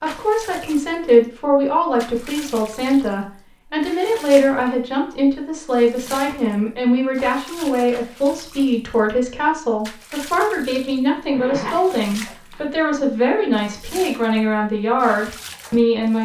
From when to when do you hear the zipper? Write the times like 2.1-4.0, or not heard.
11.3-12.7.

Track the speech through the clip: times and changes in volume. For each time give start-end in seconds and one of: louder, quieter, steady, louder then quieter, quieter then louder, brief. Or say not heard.
0.0-16.1 steady.